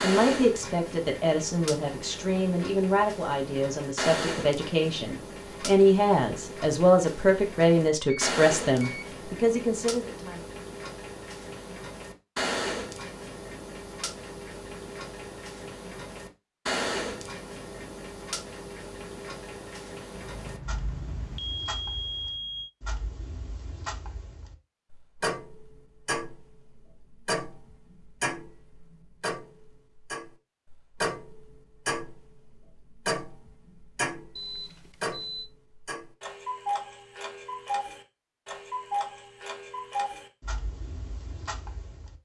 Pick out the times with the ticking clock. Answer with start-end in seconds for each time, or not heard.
0.0-42.1.